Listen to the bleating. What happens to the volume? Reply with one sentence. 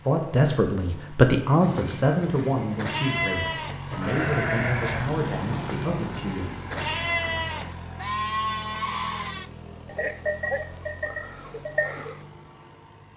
The volume of the bleating stays about the same.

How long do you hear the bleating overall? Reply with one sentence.
The bleating can be heard for 11 seconds in total.